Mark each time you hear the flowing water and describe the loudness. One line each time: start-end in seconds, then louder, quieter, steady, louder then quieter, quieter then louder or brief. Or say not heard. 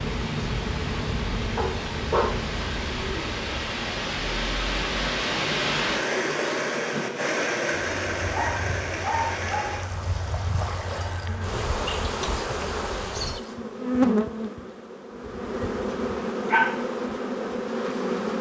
0.0-13.6 louder then quieter.